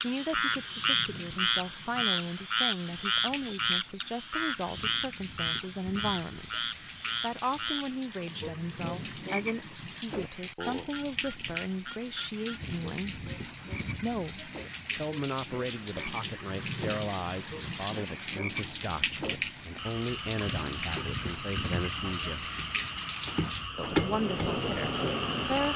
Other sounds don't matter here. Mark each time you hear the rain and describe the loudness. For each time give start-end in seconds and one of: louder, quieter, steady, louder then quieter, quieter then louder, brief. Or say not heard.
0.0-25.7 louder.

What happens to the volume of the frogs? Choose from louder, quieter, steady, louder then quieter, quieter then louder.
quieter then louder.